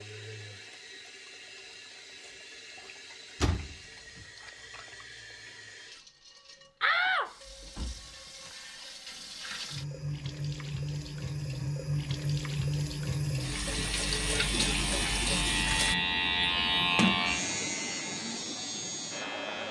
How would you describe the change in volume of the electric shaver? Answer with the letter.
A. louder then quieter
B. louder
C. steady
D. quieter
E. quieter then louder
A.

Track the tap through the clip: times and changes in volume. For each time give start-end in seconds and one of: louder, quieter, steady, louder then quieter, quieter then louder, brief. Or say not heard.
0.0-15.9 louder.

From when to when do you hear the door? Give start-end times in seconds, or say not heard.
3.4-4.2, 6.8-8.5, 16.9-17.5.